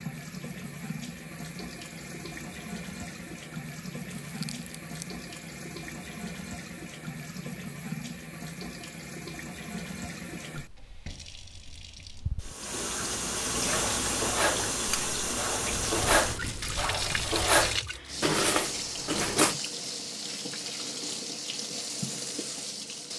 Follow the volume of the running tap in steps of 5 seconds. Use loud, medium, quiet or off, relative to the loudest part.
medium, medium, loud, loud, loud.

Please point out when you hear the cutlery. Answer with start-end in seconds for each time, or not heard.
13.7-19.6.